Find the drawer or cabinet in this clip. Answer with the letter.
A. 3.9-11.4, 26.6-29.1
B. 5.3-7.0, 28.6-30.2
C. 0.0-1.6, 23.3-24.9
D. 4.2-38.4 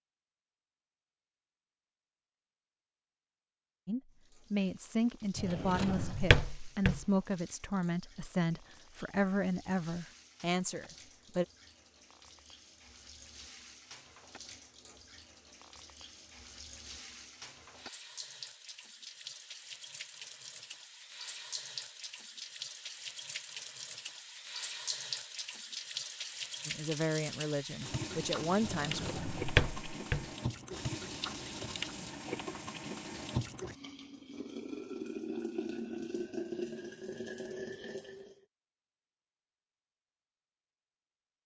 B.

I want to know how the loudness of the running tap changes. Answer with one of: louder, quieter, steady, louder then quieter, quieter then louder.
louder.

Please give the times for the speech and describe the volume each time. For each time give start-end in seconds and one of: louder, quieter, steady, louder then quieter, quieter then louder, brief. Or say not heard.
3.9-11.4 steady
26.6-29.1 brief.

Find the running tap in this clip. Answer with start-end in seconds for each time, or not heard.
4.2-38.4.